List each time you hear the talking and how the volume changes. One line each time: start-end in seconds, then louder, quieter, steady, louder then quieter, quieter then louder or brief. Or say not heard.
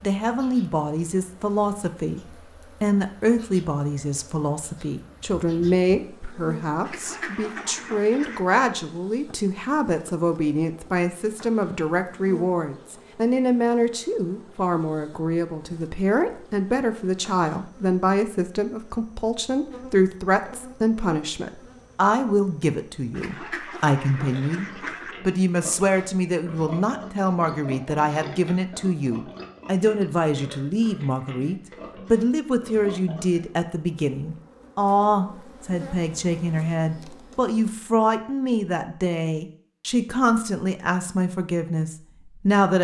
0.0-42.7 steady.